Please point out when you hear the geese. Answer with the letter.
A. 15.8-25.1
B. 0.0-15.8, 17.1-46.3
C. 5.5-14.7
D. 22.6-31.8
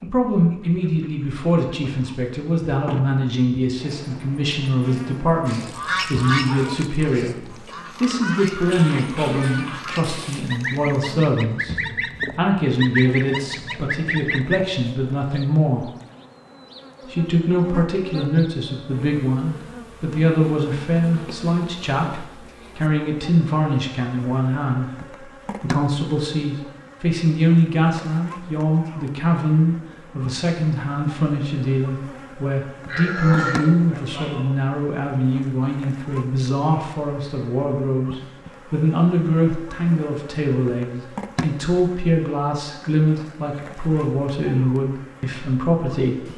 C.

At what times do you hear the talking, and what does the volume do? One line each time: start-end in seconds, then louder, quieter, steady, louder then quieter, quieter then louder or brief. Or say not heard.
0.0-15.8 steady
17.1-46.3 steady.